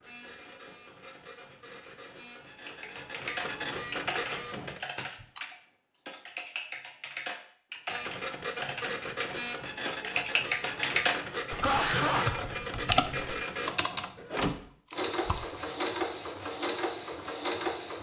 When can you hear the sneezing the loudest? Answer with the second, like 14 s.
12 s.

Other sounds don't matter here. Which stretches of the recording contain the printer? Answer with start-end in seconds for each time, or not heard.
0.0-4.8, 7.8-17.9.